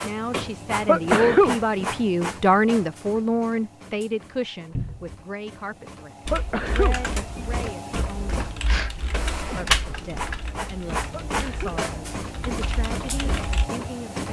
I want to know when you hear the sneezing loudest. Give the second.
1 s.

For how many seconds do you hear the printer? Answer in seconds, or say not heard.
14 s.